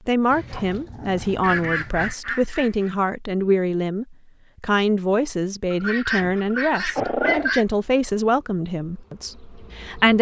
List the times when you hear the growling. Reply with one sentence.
You can hear the growling from 0.3 to 2.1 s and from 6.2 to 7.5 s.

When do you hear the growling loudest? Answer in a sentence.
The volume of the growling peaks at 7 seconds.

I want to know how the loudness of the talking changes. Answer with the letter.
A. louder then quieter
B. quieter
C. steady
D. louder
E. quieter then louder
C.